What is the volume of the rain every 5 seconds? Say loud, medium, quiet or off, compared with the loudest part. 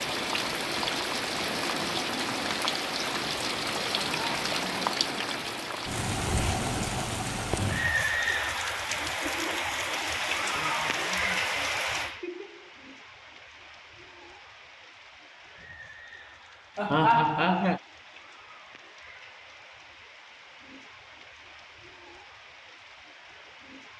loud, loud, loud, quiet, quiet.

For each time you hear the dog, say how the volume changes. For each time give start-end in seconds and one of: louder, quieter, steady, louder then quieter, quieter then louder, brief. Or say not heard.
not heard.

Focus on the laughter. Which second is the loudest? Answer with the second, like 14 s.
17 s.